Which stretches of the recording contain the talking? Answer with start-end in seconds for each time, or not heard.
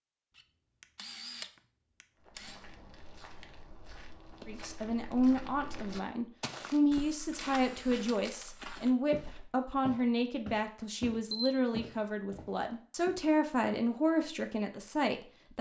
4.5-15.5.